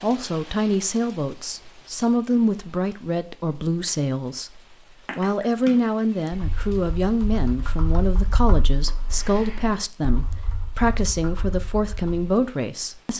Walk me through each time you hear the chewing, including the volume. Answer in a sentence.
The chewing can't be heard in this clip.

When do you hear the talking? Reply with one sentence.
The talking can be heard from 0.0 to 13.1 s.